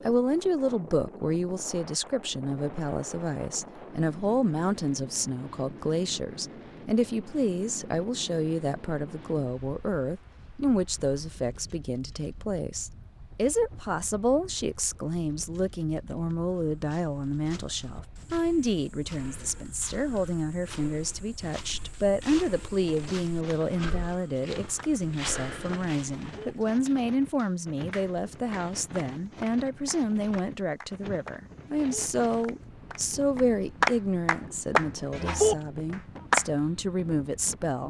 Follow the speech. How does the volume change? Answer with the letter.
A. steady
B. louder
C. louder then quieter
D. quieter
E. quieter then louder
A.